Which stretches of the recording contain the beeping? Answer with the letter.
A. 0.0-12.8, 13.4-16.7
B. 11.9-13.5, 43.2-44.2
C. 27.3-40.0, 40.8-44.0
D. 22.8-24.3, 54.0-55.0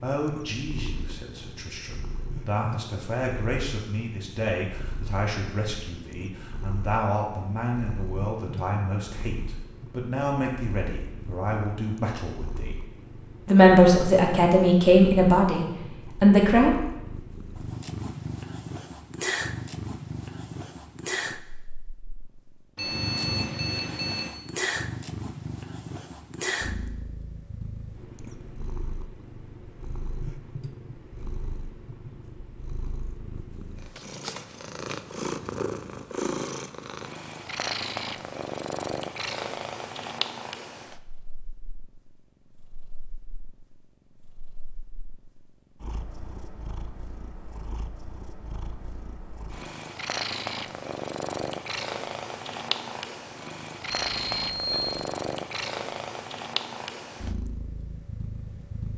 D.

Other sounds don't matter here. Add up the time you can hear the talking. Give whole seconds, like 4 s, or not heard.
16 s.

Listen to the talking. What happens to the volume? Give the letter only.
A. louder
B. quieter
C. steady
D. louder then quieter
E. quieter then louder
A.